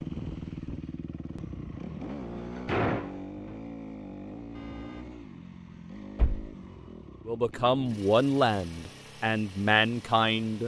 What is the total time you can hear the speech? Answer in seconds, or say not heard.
3 s.